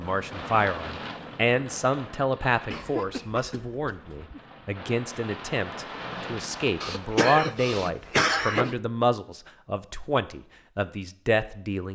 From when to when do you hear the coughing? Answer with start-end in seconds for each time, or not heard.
2.7-4.3, 6.8-8.8.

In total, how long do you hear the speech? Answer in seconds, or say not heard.
12 s.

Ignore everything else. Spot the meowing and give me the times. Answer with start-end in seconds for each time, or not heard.
not heard.